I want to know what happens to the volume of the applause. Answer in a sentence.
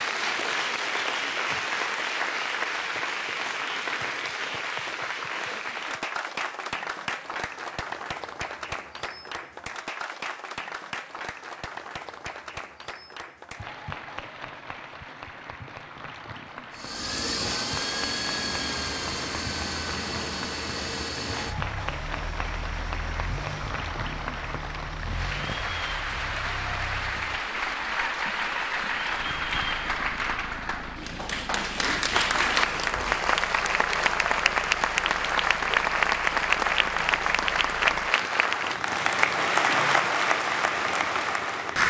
The volume of the applause goes down, then up.